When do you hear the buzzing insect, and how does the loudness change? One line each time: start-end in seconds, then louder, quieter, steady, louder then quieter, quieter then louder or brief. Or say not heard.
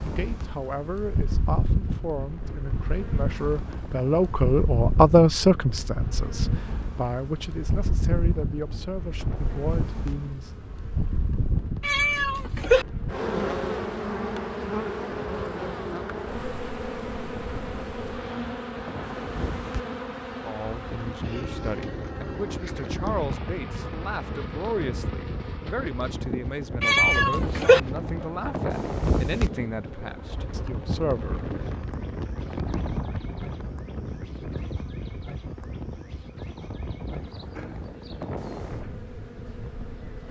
0.0-40.2 quieter.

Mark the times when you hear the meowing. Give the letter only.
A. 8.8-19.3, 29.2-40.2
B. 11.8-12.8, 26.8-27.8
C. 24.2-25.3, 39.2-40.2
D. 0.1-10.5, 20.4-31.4
B.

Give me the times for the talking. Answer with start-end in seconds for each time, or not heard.
0.1-10.5, 20.4-31.4.